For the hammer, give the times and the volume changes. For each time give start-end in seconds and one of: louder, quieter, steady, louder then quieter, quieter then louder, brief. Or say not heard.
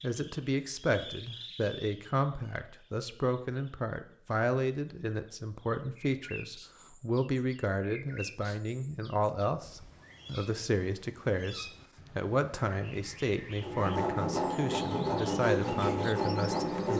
not heard.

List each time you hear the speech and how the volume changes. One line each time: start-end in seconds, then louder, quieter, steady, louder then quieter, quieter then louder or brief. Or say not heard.
0.0-16.9 steady.